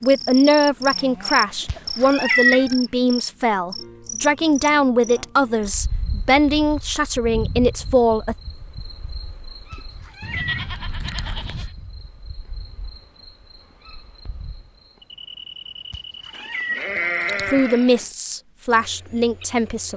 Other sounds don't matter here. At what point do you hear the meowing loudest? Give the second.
2 s.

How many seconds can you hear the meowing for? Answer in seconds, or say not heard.
5 s.